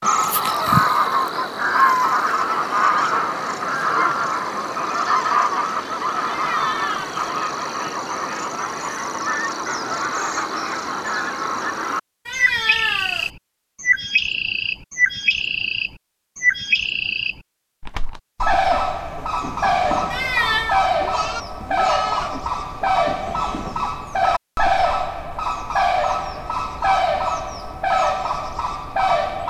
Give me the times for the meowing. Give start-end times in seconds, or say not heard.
6.2-7.2, 12.2-13.3, 20.1-20.8.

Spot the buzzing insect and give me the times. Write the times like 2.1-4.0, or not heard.
not heard.